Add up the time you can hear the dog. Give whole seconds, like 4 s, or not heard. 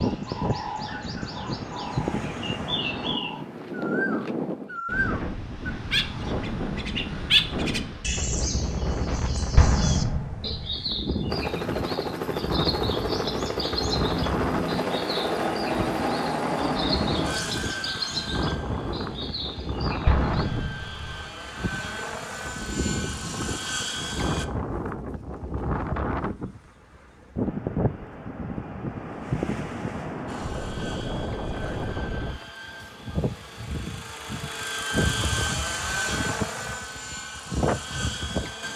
not heard.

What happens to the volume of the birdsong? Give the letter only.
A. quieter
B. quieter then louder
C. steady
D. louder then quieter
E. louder
D.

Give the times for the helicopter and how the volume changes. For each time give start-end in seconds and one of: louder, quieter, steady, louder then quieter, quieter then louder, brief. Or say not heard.
11.3-24.4 quieter then louder
30.2-38.7 louder then quieter.